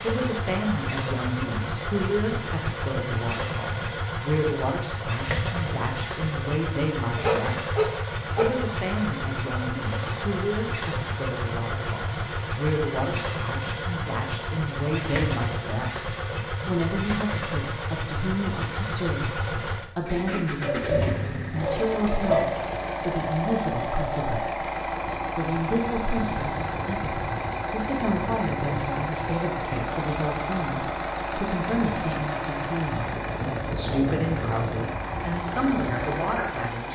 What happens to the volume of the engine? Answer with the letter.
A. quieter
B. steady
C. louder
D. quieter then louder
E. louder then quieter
B.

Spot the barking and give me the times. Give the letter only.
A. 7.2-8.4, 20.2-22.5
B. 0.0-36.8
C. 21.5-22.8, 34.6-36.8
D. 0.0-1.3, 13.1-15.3
A.